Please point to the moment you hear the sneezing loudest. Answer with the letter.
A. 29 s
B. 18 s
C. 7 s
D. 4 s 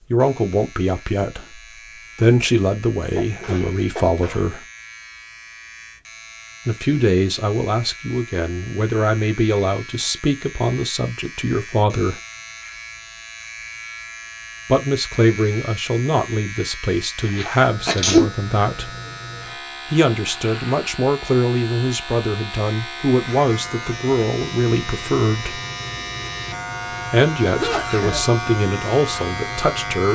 B.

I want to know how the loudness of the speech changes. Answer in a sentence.
The volume of the speech stays about the same.